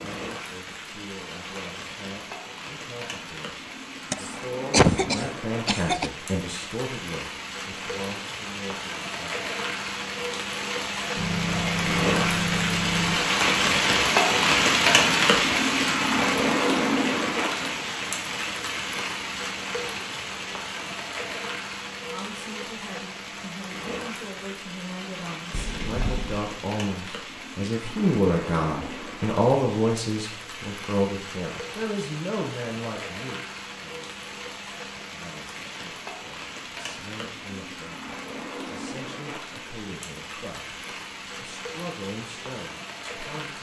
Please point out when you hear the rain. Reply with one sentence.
You can hear the rain from 0.0 to 43.5 s.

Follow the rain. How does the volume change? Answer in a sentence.
The volume of the rain goes up, then down.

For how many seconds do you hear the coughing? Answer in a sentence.
The coughing can be heard for 2 seconds in total.